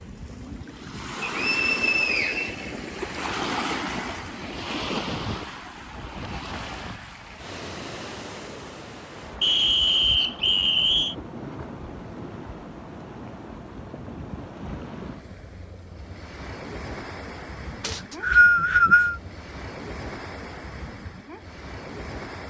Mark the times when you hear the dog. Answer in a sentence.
The dog can't be heard in this clip.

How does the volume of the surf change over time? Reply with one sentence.
The loudness of the surf goes down.